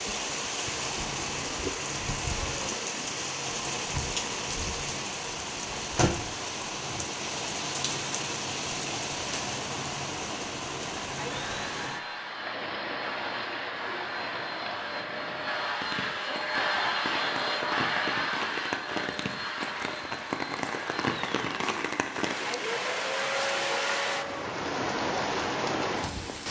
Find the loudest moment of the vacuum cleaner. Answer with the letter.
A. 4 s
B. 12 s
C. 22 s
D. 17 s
D.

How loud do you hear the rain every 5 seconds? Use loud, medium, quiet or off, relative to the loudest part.
loud, loud, medium, medium, loud, loud.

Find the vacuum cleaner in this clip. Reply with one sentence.
You can hear the vacuum cleaner from 11.1 to 24.6 s.